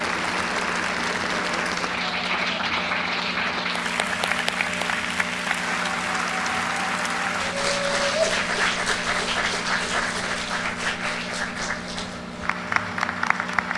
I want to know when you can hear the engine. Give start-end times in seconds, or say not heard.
0.0-13.7.